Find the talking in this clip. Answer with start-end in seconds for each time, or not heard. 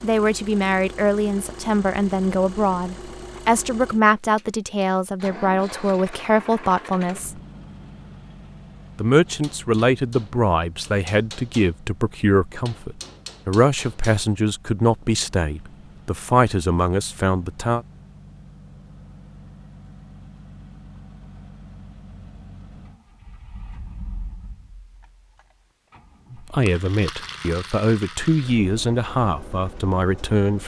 0.0-7.4, 8.9-17.9, 26.3-30.6.